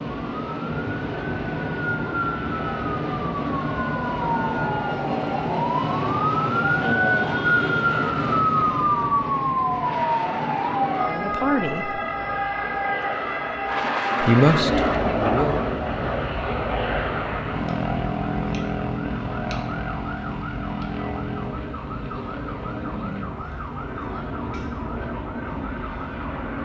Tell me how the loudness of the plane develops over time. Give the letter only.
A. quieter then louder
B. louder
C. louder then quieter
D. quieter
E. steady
C.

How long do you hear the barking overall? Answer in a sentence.
You can't hear the barking here.